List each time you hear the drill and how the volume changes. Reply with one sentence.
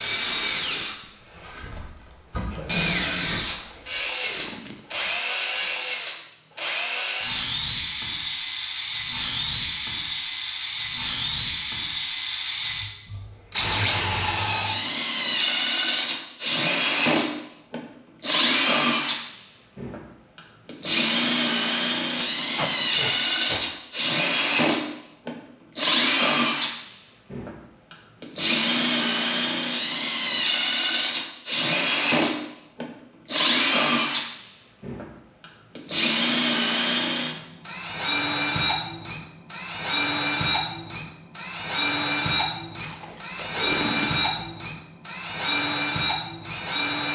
You can hear the drill from 0.0 to 47.1 s, at a steady volume.